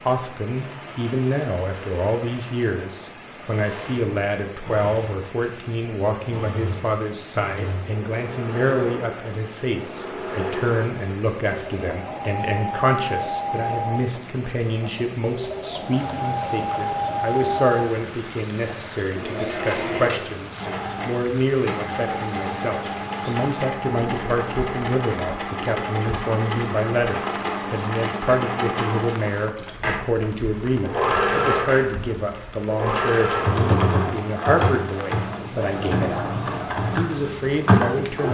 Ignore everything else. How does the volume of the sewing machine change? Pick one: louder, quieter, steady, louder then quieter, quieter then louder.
louder.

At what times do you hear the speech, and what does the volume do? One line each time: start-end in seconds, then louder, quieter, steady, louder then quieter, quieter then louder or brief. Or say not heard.
0.0-38.2 steady.